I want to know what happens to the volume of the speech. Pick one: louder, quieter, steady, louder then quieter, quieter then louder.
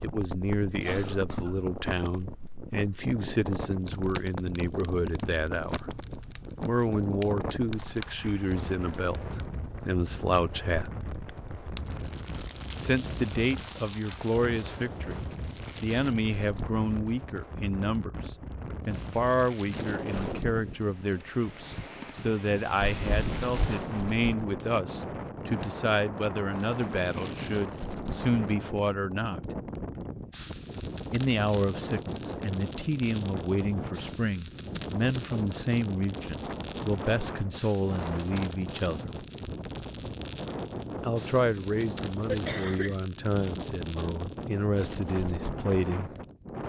steady.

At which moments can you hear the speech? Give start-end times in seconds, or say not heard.
0.0-5.9, 6.6-10.9, 12.8-29.6, 31.1-39.1, 41.0-46.1.